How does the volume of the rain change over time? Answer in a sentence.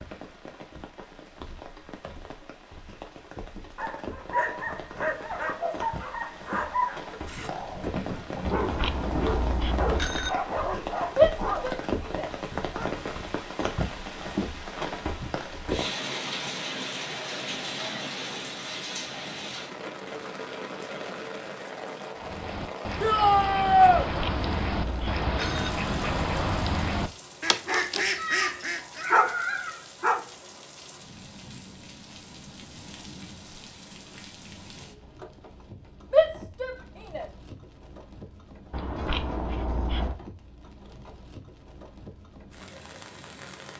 The loudness of the rain goes up, then down.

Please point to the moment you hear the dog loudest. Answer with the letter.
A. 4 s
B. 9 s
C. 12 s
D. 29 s
D.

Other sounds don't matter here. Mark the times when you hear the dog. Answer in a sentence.
You can hear the dog from 3.8 to 11.8 s and from 27.4 to 30.2 s.